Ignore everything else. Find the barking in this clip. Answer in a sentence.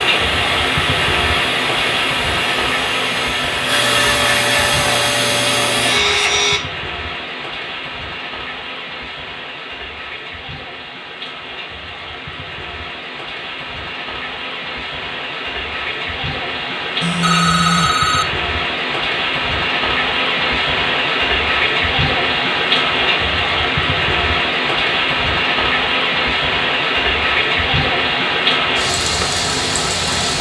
You can't hear the barking here.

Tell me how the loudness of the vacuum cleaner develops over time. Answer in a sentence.
The loudness of the vacuum cleaner goes up.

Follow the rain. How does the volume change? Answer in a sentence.
The volume of the rain goes down, then up.